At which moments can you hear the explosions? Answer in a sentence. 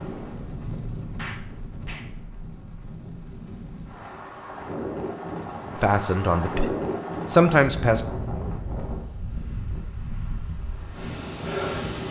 You can hear the explosions from 1.1 to 2.1 s.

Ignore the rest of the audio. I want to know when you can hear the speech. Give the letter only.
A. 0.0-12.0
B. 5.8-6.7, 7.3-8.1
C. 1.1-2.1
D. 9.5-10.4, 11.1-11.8
B.